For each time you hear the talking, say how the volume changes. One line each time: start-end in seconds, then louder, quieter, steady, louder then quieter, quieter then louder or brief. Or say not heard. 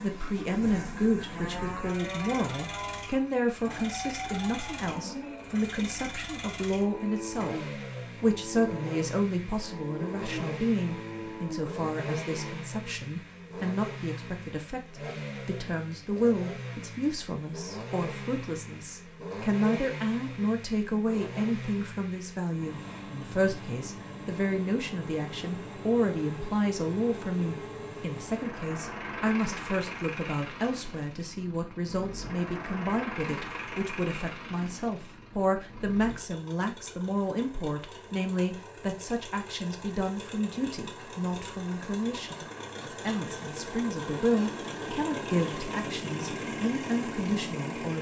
0.0-47.9 steady.